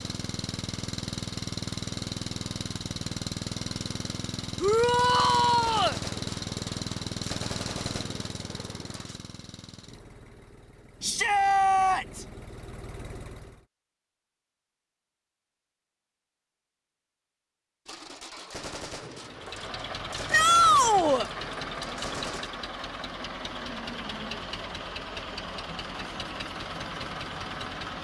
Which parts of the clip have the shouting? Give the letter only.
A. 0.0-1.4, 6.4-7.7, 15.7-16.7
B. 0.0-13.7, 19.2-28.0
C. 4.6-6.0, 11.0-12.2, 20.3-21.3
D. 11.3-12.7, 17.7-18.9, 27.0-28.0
C.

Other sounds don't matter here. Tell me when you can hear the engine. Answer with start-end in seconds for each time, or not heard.
0.0-13.7, 19.2-28.0.